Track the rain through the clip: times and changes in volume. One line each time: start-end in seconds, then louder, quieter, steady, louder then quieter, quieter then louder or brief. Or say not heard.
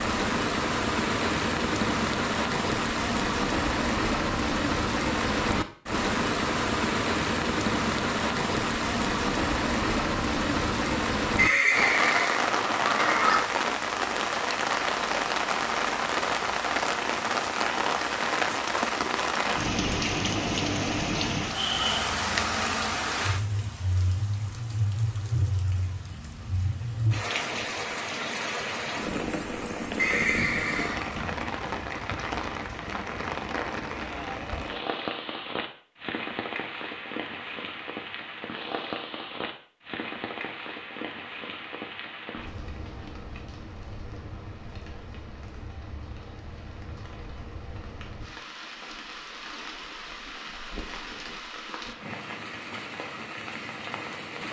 0.0-54.4 quieter.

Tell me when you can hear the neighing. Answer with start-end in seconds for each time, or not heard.
11.3-13.4, 29.9-31.1.